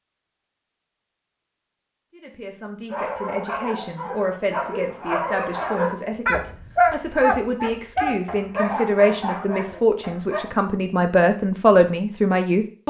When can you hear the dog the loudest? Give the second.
7 s.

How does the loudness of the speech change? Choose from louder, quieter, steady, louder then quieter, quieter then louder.
louder.